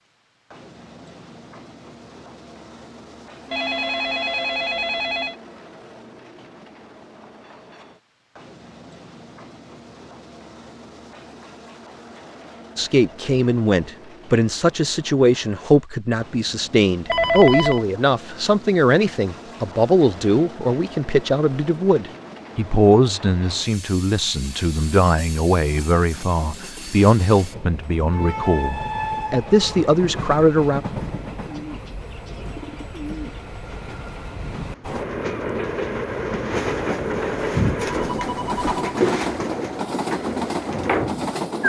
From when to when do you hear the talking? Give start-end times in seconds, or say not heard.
12.8-30.8.